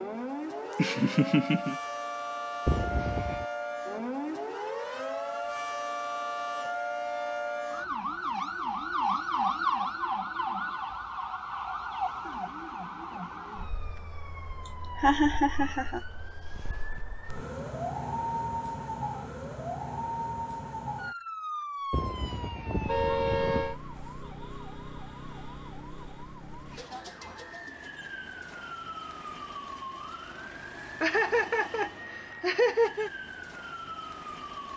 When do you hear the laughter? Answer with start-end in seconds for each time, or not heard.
0.6-1.8, 14.9-16.0, 31.0-33.1.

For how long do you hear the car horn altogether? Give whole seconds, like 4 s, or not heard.
3 s.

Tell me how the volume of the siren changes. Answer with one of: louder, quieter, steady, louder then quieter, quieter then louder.
quieter.